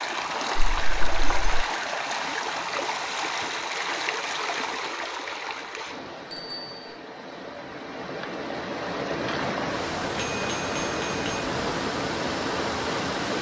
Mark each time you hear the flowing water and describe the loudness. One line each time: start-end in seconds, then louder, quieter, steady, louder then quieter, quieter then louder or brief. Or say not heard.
0.0-13.3 quieter then louder.